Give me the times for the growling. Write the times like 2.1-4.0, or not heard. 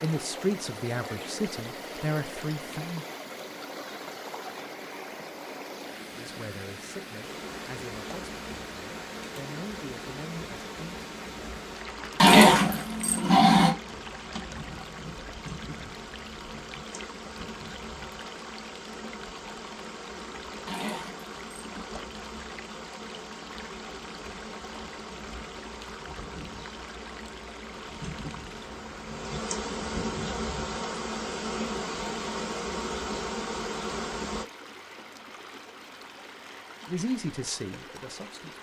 12.2-13.8, 20.6-21.9.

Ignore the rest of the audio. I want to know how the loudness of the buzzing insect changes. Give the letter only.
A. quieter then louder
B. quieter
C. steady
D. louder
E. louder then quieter
D.